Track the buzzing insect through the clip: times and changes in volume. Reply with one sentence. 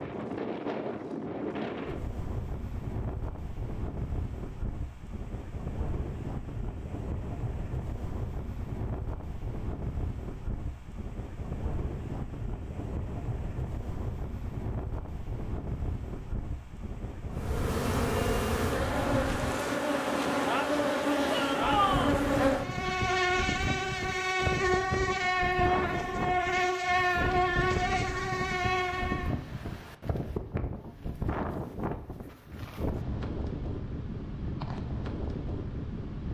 The buzzing insect can be heard from 17.3 to 29.4 s, at a steady volume.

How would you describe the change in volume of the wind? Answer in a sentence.
The volume of the wind stays about the same.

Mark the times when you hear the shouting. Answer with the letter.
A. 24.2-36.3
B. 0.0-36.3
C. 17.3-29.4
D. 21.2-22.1
D.